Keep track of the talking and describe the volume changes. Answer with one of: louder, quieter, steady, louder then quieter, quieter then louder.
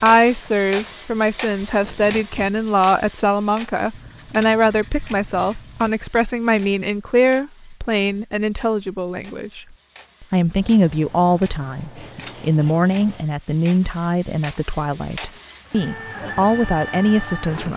steady.